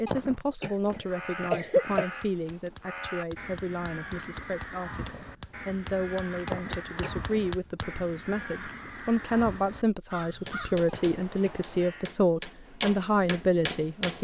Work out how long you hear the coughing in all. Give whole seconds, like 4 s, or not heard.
4 s.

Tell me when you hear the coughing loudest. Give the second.
2 s.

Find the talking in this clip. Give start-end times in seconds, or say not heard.
0.0-14.1.